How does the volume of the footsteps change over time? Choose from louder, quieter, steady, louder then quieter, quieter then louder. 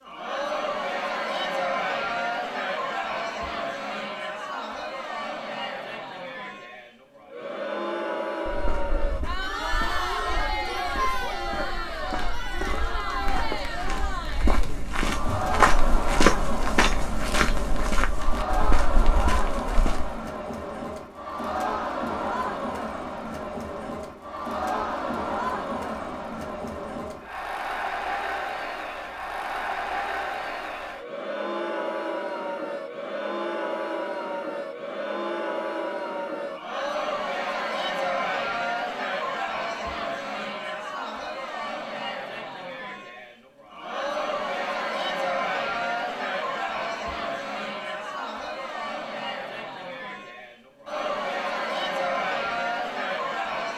louder then quieter.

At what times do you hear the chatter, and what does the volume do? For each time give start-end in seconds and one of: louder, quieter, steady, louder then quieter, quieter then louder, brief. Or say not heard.
0.0-53.7 steady.